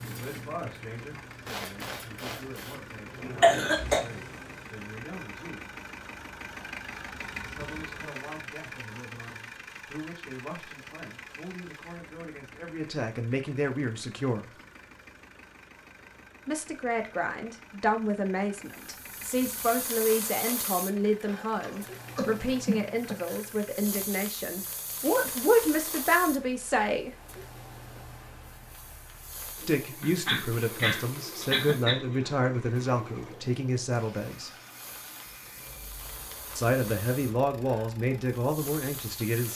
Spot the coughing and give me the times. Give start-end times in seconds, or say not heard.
3.4-4.0, 21.6-23.4, 30.0-32.0.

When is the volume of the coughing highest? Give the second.
4 s.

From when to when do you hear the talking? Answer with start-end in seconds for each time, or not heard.
0.1-5.7, 7.4-14.4, 16.4-27.1, 29.6-34.5, 36.5-39.5.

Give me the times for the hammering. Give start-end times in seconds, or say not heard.
not heard.